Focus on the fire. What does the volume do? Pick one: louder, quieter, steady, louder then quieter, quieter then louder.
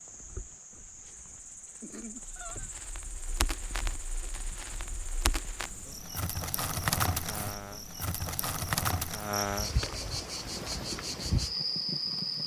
louder then quieter.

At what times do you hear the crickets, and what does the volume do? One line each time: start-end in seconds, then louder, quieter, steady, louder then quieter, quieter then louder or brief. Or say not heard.
0.0-12.4 louder.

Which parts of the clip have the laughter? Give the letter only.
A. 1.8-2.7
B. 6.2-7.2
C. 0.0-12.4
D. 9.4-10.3
A.